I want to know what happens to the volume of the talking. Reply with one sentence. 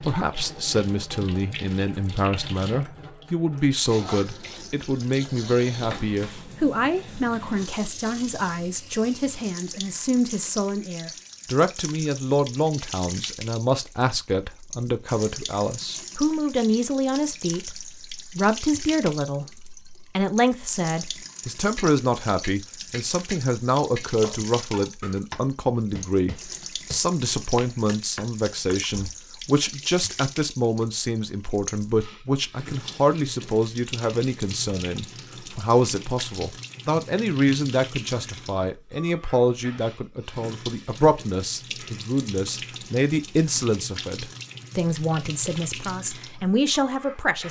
The loudness of the talking stays about the same.